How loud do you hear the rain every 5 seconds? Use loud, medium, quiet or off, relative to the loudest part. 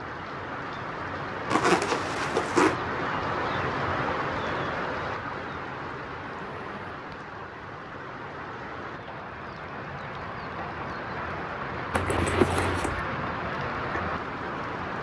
loud, medium, loud.